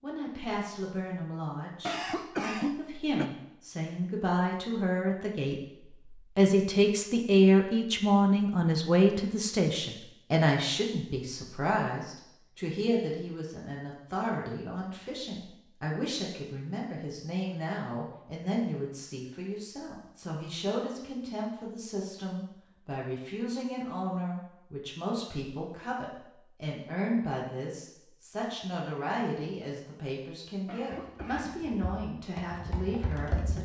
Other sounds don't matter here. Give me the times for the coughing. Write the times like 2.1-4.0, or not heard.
1.9-3.3, 30.6-31.6.